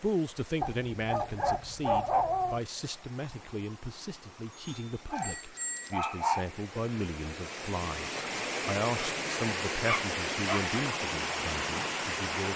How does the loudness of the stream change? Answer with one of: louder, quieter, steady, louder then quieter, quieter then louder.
louder.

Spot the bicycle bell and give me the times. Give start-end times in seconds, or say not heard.
4.5-6.0.